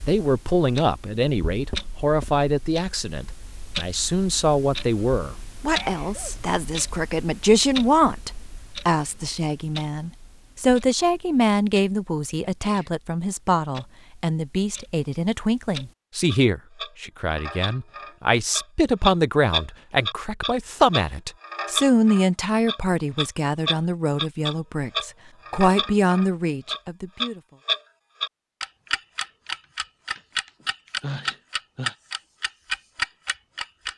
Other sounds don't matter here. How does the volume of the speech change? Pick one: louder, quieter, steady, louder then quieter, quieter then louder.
steady.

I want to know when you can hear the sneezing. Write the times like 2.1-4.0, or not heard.
5.7-6.3, 12.4-12.9, 30.6-31.9.